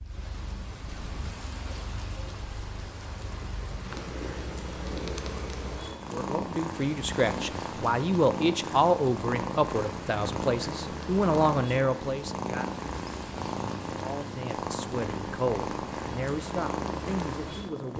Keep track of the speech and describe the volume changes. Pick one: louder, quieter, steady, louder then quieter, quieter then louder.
quieter.